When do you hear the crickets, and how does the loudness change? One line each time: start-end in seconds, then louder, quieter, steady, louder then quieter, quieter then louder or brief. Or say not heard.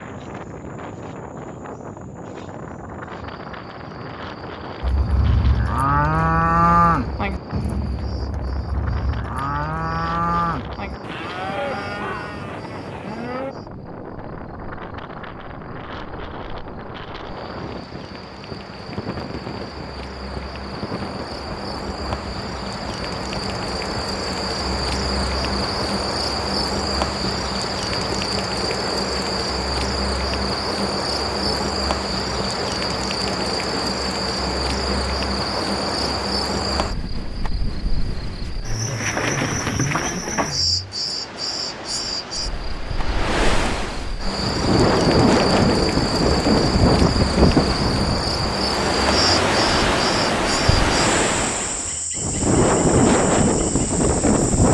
0.0-54.6 louder.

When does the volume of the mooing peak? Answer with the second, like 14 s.
7 s.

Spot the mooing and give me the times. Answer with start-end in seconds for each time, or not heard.
4.8-13.6.